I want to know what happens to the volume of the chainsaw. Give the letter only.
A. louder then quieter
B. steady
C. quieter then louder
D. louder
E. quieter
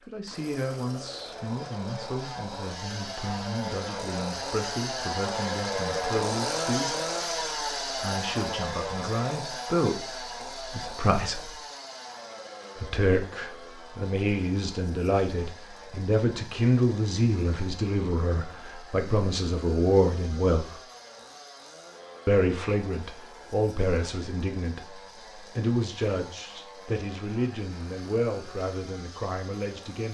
E.